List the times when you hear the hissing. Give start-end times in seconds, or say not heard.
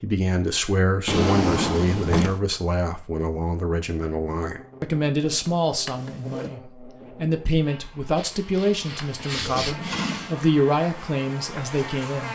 8.2-9.8.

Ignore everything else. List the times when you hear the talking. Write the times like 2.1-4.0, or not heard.
0.0-12.2.